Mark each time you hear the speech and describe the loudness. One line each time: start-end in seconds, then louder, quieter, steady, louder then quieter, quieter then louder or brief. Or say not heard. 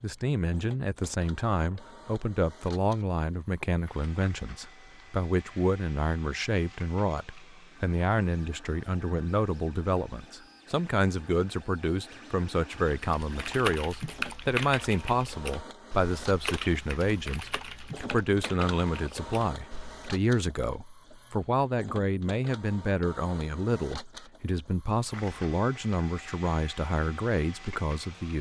0.0-28.3 steady.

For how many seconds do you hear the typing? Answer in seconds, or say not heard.
7 s.